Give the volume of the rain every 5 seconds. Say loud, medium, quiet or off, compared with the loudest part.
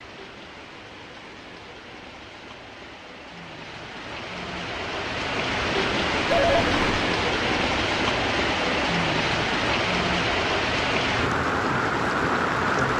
quiet, loud, loud.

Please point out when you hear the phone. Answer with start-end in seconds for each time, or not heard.
6.3-7.0.